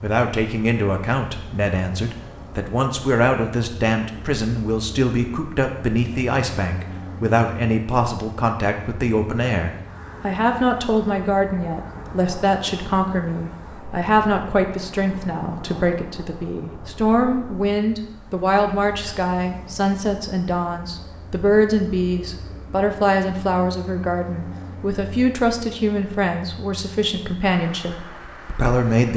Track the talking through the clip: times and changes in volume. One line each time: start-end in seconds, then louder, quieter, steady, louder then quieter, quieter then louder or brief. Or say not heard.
0.0-29.1 steady.